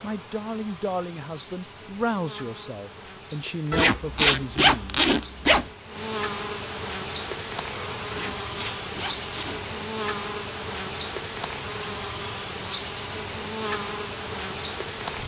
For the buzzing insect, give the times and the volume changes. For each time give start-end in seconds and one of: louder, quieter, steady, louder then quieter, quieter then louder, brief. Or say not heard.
0.0-15.2 louder.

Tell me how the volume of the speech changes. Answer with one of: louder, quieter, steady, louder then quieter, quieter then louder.
steady.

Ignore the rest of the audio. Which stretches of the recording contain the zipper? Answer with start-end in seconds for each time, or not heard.
3.7-5.7, 8.1-9.7.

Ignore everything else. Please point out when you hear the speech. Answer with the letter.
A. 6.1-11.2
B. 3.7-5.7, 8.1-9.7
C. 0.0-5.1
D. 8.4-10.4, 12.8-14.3
C.